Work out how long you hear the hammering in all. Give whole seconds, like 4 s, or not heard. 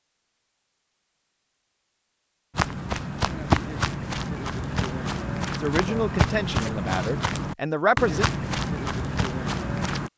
not heard.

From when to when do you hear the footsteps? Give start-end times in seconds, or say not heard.
2.5-10.1.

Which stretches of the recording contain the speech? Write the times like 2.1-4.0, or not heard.
5.6-8.2.